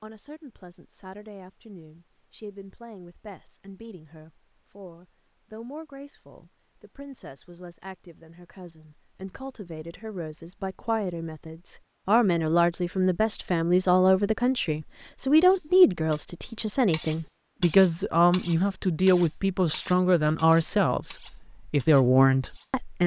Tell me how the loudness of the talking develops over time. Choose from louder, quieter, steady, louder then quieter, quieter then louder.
louder.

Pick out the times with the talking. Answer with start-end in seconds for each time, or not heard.
0.0-23.0.